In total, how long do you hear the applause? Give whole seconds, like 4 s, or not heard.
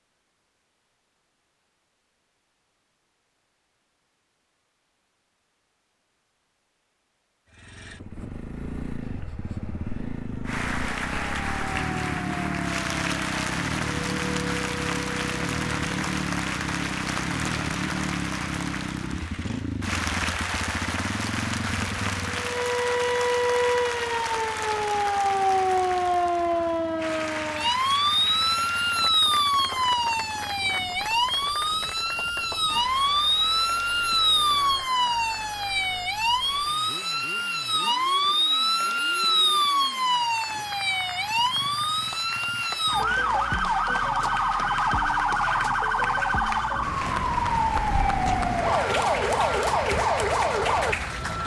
41 s.